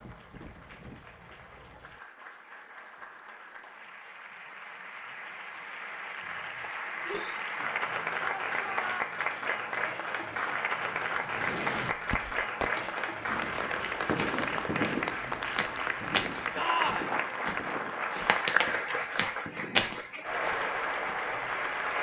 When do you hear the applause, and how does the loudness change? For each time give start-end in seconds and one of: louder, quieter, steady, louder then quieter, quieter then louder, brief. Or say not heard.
0.0-21.9 louder.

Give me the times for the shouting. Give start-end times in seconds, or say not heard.
8.2-9.1, 16.6-17.1.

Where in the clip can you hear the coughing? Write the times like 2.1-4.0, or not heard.
6.2-7.4.